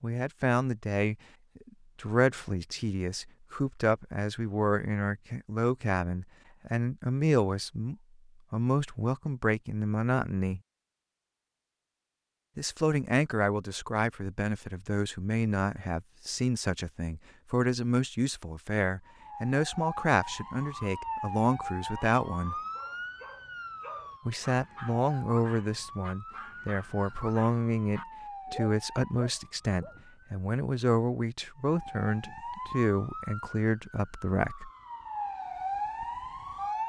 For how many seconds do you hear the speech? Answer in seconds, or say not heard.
31 s.